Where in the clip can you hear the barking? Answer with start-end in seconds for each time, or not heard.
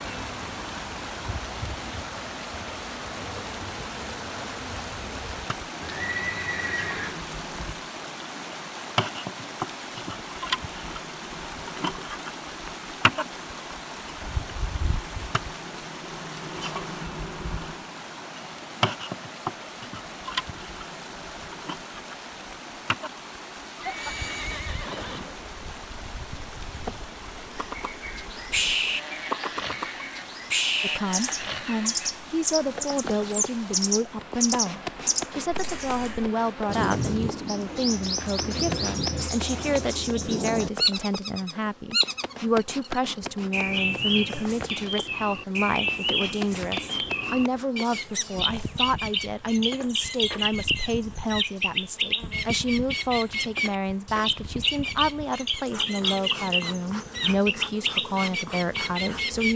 not heard.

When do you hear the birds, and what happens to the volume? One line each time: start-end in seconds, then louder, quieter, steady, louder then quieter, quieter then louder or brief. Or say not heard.
27.6-59.5 steady.